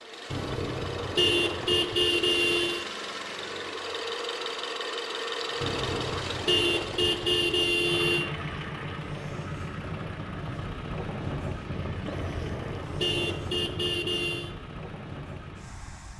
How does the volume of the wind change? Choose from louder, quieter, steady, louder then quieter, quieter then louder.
louder then quieter.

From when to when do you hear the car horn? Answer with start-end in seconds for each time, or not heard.
0.3-2.9, 5.6-8.2, 12.1-14.5.